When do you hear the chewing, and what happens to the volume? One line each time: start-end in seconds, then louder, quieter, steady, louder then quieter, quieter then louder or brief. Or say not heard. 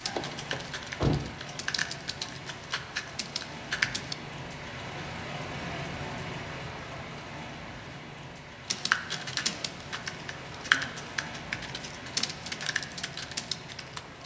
not heard.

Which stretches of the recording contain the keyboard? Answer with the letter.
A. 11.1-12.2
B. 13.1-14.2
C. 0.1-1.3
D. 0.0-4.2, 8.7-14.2
D.